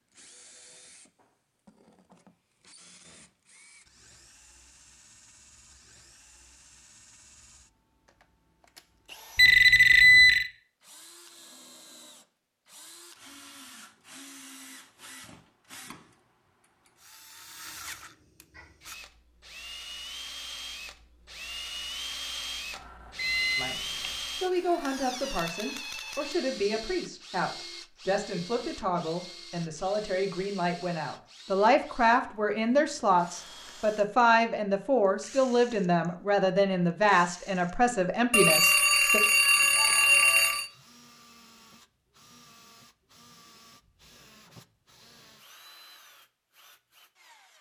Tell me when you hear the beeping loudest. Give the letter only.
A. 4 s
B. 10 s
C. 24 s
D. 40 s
B.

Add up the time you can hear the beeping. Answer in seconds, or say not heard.
5 s.